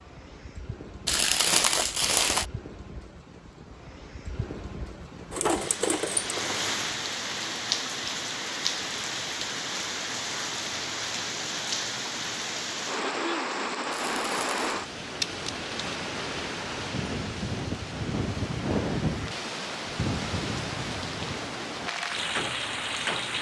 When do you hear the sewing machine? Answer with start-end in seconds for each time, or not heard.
5.3-6.7.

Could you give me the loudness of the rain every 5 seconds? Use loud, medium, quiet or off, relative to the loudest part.
quiet, loud, loud, loud, loud.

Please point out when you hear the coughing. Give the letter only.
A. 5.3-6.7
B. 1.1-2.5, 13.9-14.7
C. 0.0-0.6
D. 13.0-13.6
D.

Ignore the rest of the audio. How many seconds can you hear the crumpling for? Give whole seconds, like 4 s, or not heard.
2 s.